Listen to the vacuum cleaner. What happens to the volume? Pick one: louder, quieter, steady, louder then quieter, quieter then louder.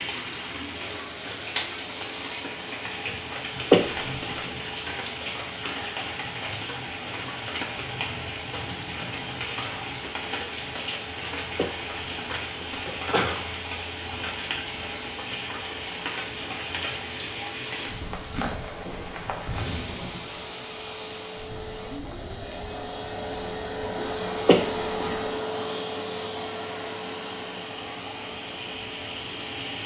louder.